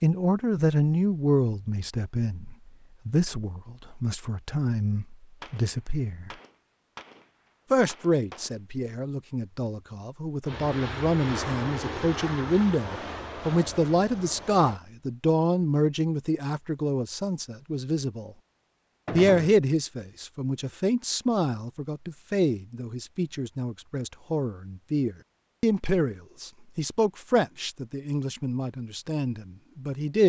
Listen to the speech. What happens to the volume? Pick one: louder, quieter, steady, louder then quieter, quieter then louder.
steady.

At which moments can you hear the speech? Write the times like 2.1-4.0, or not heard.
0.0-6.3, 7.7-18.3, 19.1-30.2.